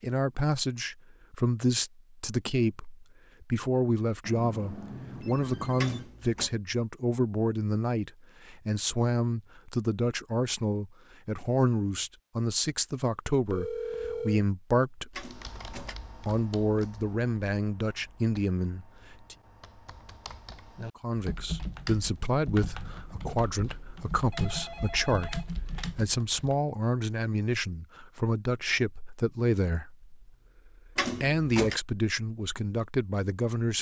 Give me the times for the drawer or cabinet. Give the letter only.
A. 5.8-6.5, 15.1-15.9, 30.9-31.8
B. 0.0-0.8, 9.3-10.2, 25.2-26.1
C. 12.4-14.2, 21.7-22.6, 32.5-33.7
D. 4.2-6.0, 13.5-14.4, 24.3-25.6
A.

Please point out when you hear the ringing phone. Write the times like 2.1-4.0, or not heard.
4.2-6.0, 13.5-14.4, 24.3-25.6.